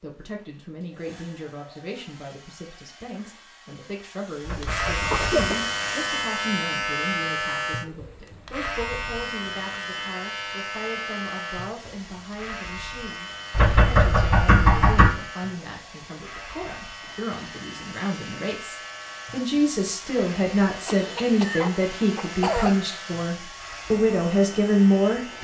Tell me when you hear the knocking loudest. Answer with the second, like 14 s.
15 s.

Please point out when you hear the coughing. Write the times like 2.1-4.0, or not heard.
5.0-5.7, 20.9-22.8.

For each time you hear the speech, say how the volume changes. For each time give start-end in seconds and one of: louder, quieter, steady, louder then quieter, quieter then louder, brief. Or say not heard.
0.0-25.3 louder.